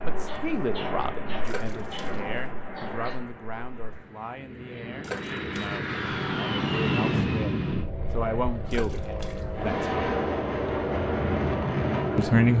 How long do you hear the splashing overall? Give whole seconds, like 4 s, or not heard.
3 s.